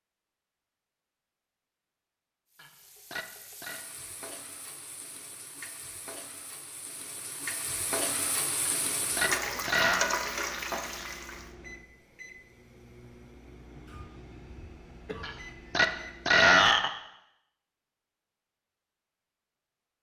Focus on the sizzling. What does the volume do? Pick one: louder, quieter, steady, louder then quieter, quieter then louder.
louder.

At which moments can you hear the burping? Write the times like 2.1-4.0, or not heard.
2.5-3.9, 8.7-10.1, 15.2-16.9.